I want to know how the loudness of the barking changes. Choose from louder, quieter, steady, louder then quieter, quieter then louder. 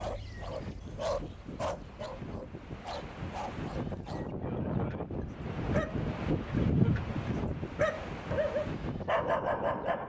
quieter then louder.